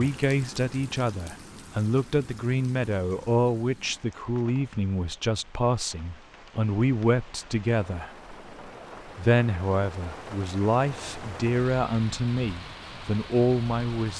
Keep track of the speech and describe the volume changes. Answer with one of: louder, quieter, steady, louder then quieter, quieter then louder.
steady.